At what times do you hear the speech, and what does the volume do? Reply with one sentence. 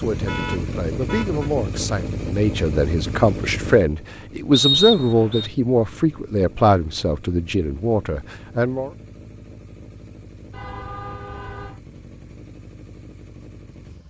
The speech can be heard from 0.0 to 8.9 s, getting louder then quieter.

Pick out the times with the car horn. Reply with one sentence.
The car horn can be heard from 0.2 to 1.5 s and from 10.5 to 11.8 s.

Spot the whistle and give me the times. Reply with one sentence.
The whistle can be heard from 4.5 to 5.5 s.